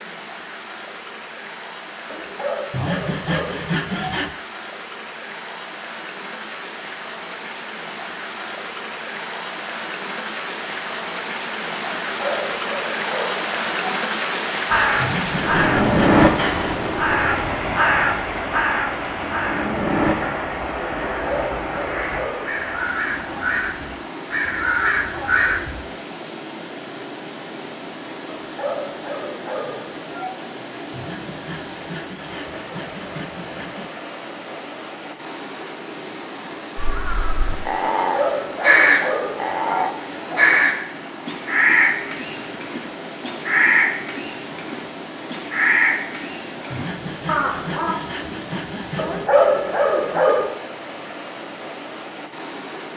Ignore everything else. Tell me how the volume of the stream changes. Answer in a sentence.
The volume of the stream goes up, then down.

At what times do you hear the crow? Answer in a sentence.
You can hear the crow from 14.7 to 25.8 s and from 36.8 to 48.0 s.